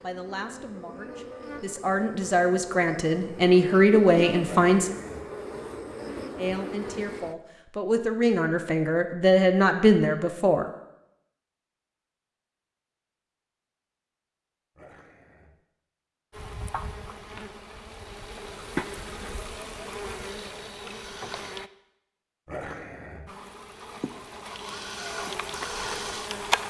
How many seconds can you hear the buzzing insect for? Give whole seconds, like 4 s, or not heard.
16 s.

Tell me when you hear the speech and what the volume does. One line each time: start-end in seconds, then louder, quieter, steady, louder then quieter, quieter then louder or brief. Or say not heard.
0.0-4.9 louder
6.3-10.7 louder.